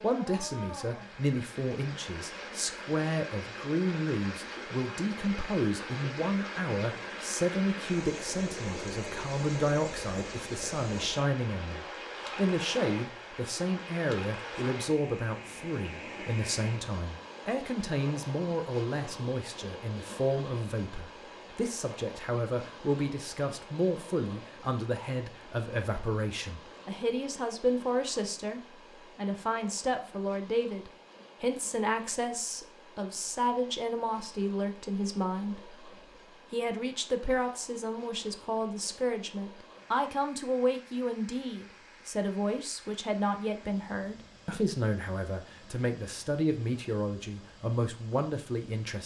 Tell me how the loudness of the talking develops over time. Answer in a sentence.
The volume of the talking stays about the same.